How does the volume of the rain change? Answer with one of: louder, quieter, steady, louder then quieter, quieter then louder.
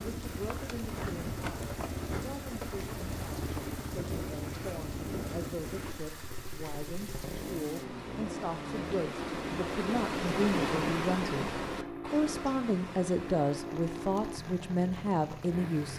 louder then quieter.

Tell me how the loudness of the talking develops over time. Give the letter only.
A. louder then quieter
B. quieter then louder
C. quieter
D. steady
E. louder
E.